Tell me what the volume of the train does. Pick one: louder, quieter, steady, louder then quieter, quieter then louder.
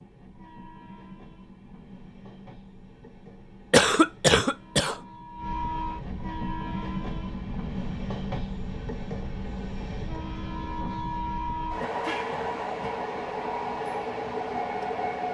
louder.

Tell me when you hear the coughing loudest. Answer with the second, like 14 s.
4 s.